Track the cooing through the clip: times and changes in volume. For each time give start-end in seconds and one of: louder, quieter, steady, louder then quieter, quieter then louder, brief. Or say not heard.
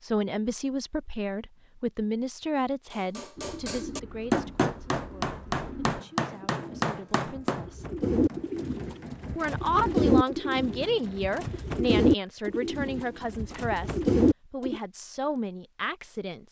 3.4-14.8 louder.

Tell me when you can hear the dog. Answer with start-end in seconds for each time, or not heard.
not heard.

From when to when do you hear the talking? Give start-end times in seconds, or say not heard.
0.0-7.8, 9.3-16.4.